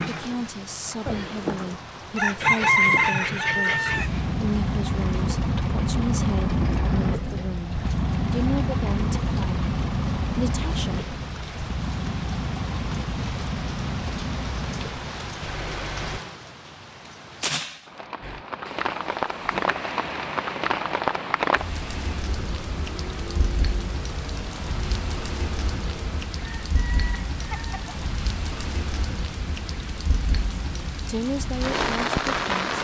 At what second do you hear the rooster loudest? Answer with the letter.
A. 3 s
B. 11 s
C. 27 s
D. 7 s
A.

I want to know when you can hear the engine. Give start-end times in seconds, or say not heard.
2.4-16.2, 18.2-26.3.